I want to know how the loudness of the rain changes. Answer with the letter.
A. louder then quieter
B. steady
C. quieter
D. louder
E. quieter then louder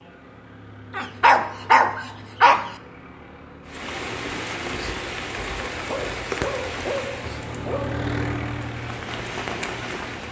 E.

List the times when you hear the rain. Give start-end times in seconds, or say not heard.
3.6-10.2.